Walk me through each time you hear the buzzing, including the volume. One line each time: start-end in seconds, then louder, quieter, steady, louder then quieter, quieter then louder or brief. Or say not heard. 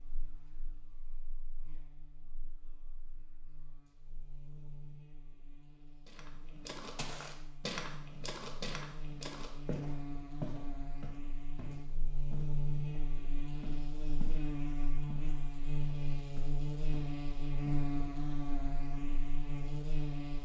0.0-20.3 louder.